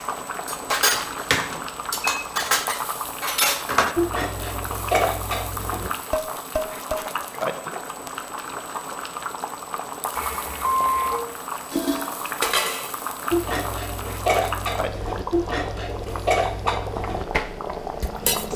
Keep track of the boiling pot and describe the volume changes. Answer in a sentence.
The volume of the boiling pot stays about the same.